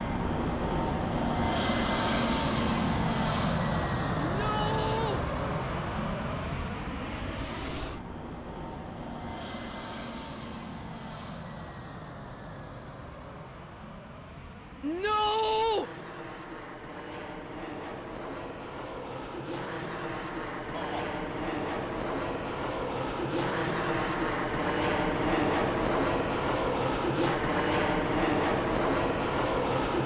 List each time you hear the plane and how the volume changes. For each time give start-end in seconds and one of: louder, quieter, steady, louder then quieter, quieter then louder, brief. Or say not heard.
0.0-30.0 quieter then louder.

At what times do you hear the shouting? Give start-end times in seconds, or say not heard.
4.2-5.2, 14.8-15.9, 20.7-21.1.